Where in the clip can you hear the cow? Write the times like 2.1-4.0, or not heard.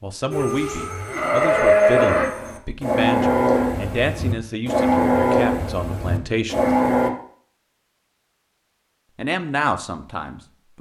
0.3-7.1.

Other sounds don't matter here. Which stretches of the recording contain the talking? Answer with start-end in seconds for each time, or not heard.
0.0-6.7, 9.2-10.7.